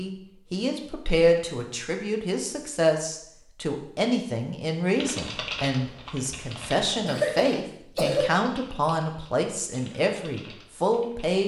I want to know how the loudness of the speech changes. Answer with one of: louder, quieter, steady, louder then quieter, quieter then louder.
steady.